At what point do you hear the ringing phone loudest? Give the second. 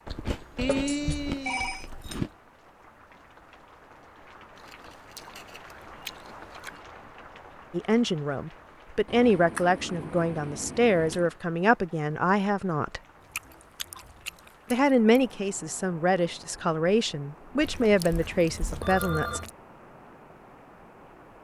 1 s.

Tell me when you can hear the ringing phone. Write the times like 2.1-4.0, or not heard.
0.6-1.9, 17.6-19.4.